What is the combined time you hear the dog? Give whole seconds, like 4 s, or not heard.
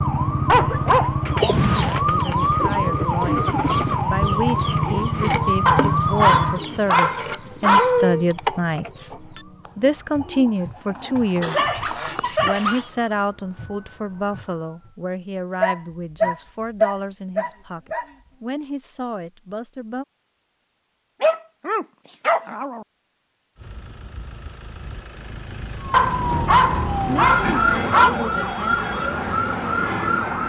12 s.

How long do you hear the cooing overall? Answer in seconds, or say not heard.
11 s.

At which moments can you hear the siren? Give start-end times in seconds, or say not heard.
0.0-14.9, 25.8-30.4.